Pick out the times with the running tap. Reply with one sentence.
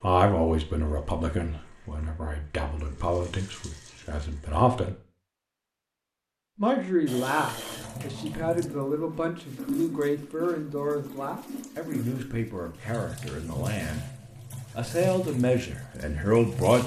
You can hear the running tap from 0.0 to 4.7 s and from 7.0 to 16.8 s.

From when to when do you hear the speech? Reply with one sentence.
The speech can be heard from 0.0 to 5.0 s, from 6.5 to 14.1 s and from 14.7 to 16.8 s.